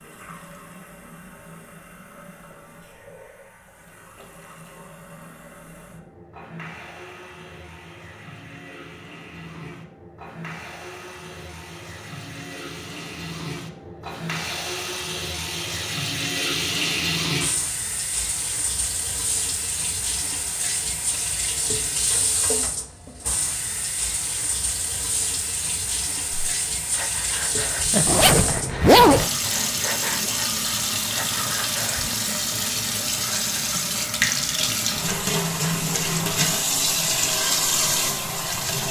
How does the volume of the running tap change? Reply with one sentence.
The volume of the running tap goes up.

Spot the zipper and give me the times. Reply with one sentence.
You can hear the zipper from 28.1 to 29.3 s.